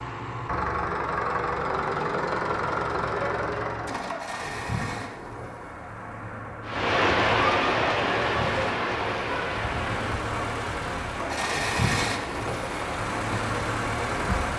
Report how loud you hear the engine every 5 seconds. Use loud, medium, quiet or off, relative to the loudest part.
loud, medium, loud.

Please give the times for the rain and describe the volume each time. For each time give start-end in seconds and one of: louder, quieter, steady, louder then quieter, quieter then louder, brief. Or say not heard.
6.6-14.5 quieter.